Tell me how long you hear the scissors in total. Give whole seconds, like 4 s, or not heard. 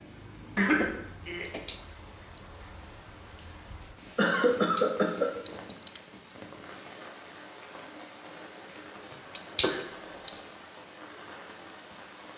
4 s.